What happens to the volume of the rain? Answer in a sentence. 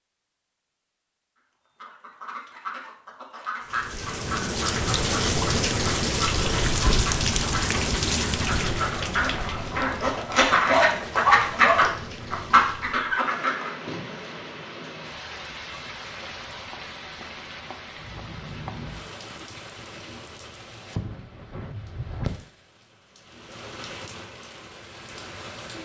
The loudness of the rain goes down.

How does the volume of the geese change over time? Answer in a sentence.
The volume of the geese goes up.